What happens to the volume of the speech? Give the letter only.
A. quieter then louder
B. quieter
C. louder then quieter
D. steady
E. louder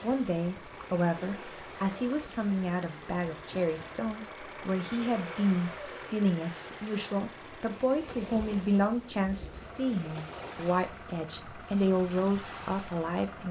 D.